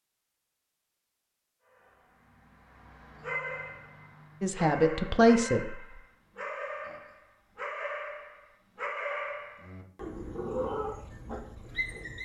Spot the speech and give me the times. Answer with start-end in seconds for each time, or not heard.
4.4-5.8.